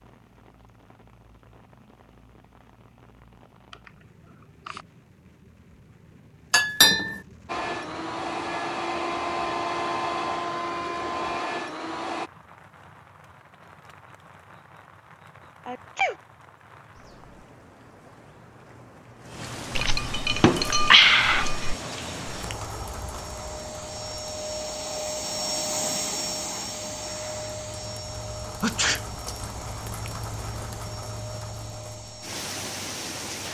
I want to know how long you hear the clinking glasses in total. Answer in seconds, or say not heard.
3 s.